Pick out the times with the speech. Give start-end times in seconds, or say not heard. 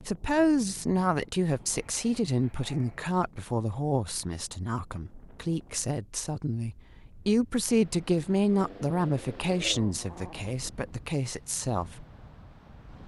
0.1-12.1.